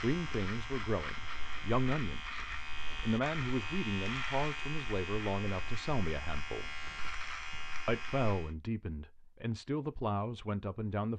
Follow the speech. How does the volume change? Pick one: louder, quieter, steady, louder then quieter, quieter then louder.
steady.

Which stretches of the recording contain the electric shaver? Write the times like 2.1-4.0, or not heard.
0.0-8.6.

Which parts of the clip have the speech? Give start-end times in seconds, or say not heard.
0.0-6.8, 7.8-11.1.